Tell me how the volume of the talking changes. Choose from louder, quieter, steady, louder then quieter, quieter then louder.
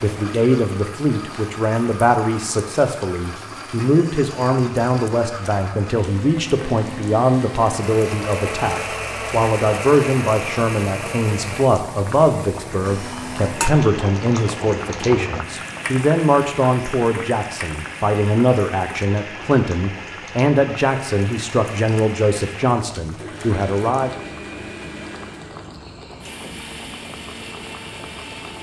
steady.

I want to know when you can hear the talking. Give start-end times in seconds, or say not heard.
0.0-24.2.